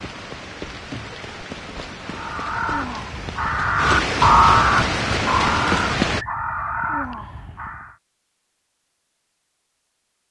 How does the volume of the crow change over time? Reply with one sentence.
The loudness of the crow goes up, then down.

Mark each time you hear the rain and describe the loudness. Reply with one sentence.
You can hear the rain from 0.0 to 6.2 s, getting louder.